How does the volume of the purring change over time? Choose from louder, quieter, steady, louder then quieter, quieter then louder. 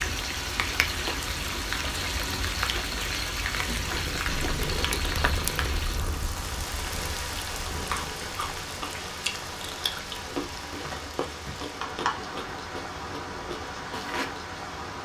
quieter.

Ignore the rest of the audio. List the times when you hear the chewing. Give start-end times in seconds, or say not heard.
7.9-14.3.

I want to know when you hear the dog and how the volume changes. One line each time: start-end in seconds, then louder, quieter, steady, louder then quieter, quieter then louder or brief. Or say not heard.
not heard.